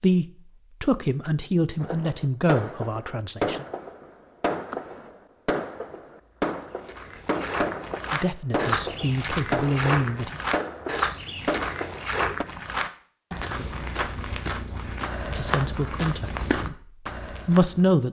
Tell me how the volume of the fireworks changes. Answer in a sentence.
The volume of the fireworks stays about the same.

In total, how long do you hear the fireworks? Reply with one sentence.
The fireworks can be heard for 11 seconds in total.